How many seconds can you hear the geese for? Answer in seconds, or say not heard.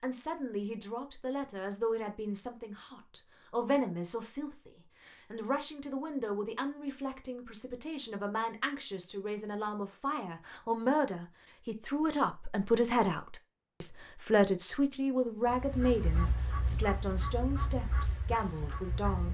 4 s.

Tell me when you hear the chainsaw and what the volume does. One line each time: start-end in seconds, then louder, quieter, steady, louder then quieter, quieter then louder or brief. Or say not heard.
not heard.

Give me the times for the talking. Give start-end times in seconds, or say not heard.
0.0-19.2.